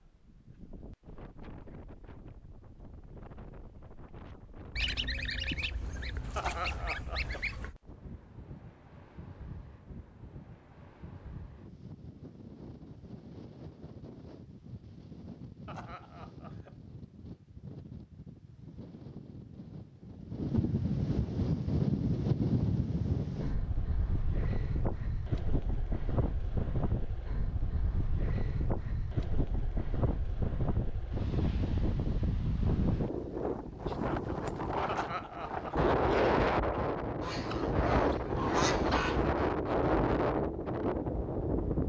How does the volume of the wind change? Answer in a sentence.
The volume of the wind goes up.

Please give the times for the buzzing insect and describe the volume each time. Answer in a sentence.
You can't hear the buzzing insect here.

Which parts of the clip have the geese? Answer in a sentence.
You can hear the geese from 4.8 to 7.8 s and from 37.2 to 39.3 s.